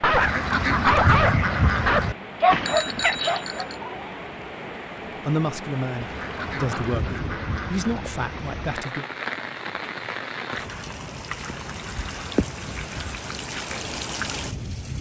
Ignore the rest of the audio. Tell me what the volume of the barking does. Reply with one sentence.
The loudness of the barking goes down.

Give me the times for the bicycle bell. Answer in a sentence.
You can hear the bicycle bell from 2.5 to 3.8 s.